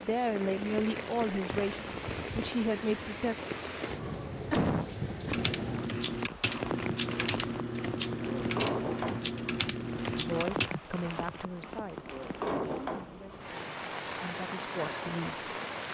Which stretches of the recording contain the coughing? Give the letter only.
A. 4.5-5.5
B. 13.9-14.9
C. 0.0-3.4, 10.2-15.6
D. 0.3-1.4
A.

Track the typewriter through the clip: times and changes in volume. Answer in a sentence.
You can hear the typewriter from 5.2 to 10.7 s, at a steady volume.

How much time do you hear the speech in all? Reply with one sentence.
The speech can be heard for 9 seconds in total.